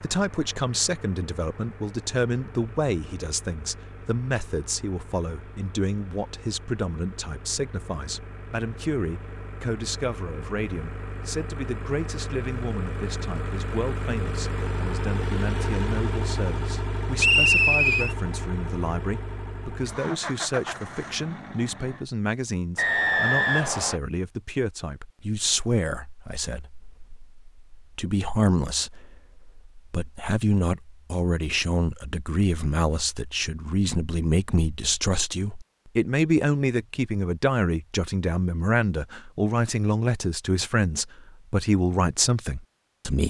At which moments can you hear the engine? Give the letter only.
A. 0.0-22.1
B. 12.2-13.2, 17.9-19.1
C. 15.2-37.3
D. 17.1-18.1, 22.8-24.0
A.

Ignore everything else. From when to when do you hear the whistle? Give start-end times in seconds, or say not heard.
17.1-18.1, 22.8-24.0.